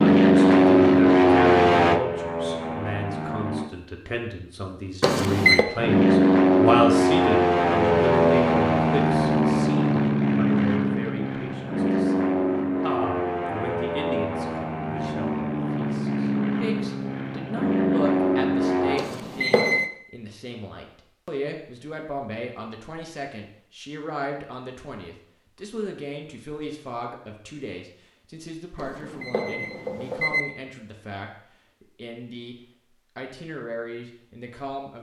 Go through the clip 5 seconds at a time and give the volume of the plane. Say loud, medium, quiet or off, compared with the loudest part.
loud, loud, medium, medium, off, off, off.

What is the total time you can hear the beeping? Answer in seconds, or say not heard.
3 s.